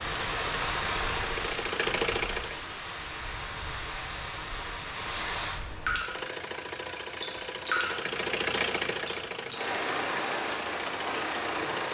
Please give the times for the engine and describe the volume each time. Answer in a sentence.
The engine can be heard briefly from 0.0 to 2.6 s; and from 5.8 to 11.8 s, getting louder then quieter.